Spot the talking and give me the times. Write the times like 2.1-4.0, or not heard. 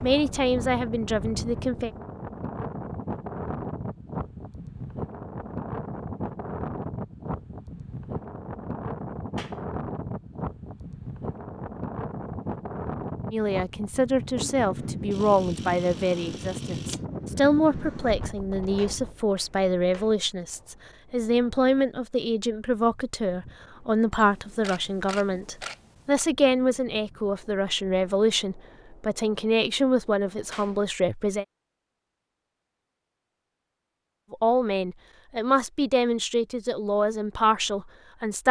0.0-1.9, 13.3-31.4, 34.3-38.4.